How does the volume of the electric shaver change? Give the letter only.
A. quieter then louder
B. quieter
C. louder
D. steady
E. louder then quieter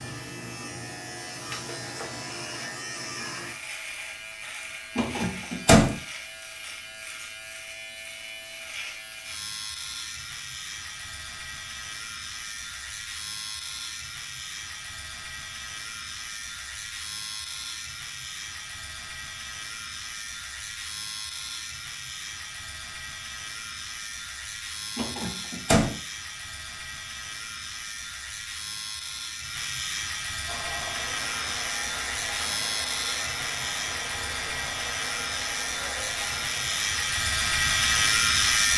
C.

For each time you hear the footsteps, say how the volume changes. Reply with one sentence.
You can't hear the footsteps here.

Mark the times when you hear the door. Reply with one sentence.
You can hear the door from 5.0 to 5.9 s and from 24.9 to 25.9 s.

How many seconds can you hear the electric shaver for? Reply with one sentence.
The electric shaver can be heard for 39 seconds in total.